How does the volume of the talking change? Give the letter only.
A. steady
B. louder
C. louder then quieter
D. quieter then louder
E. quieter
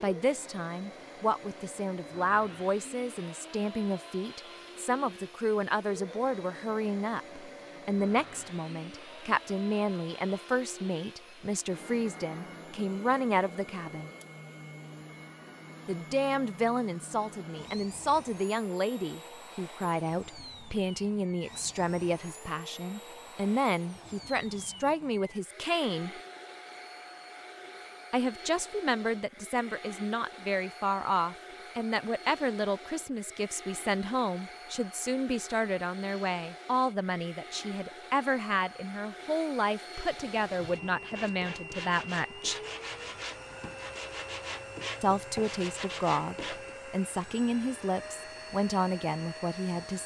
A.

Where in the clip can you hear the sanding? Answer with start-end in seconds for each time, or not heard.
40.2-46.8.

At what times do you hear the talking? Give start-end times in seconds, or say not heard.
0.0-14.1, 15.8-26.2, 28.1-42.6, 45.0-50.0.